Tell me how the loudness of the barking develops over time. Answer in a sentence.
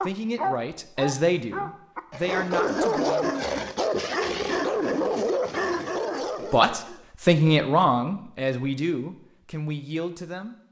The volume of the barking stays about the same.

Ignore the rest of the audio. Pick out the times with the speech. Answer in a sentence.
You can hear the speech from 0.0 to 3.2 s and from 6.5 to 10.6 s.